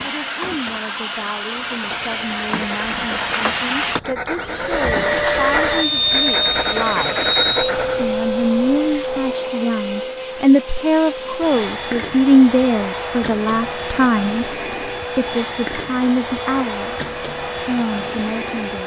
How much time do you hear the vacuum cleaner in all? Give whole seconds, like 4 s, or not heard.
19 s.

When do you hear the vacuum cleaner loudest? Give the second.
6 s.